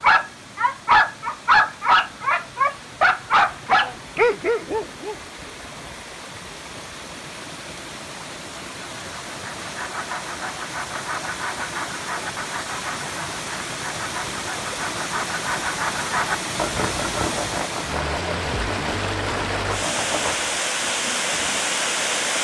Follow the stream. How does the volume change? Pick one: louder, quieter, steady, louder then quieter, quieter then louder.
louder.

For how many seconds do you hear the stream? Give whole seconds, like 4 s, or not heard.
22 s.